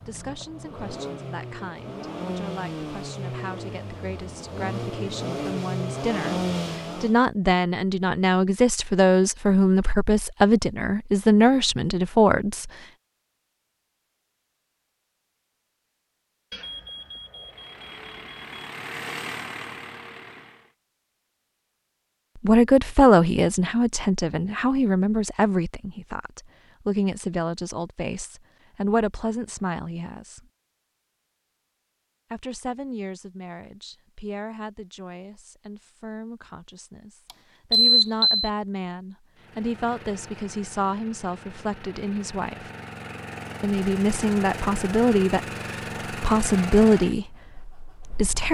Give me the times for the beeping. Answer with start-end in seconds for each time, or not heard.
16.5-18.4, 37.7-38.5.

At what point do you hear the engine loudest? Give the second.
6 s.